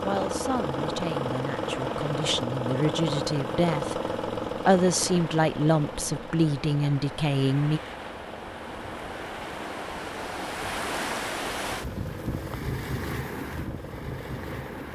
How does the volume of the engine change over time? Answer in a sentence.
The loudness of the engine goes down.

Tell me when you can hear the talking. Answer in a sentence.
You can hear the talking from 0.0 to 7.8 s.